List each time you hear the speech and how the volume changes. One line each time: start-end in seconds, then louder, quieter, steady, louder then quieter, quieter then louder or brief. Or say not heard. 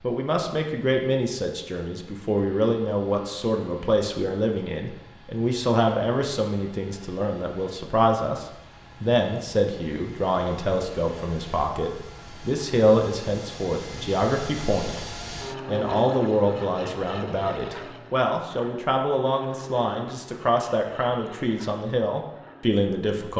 0.0-23.3 steady.